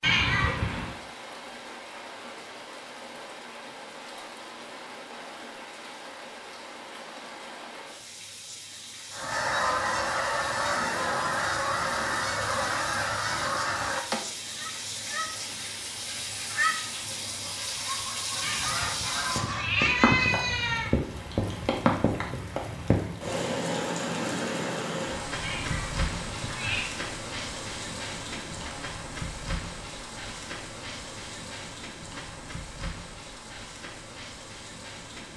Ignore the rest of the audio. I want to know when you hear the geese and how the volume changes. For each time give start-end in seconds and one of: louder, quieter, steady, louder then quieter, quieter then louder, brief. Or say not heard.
9.1-20.1 quieter.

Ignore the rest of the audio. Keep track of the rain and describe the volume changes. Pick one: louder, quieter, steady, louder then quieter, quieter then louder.
louder then quieter.